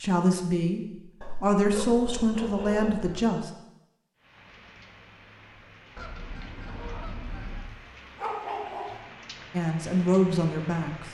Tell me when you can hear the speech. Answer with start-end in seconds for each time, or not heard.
0.0-3.5, 9.5-11.0.